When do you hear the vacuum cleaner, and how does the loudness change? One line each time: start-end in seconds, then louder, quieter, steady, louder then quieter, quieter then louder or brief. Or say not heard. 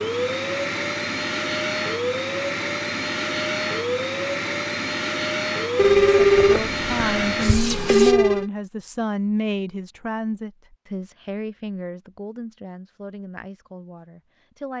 0.0-8.2 steady.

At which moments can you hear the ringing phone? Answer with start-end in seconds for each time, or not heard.
5.8-8.5.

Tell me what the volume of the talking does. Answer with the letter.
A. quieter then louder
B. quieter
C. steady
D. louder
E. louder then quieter
B.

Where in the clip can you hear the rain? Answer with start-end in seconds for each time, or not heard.
not heard.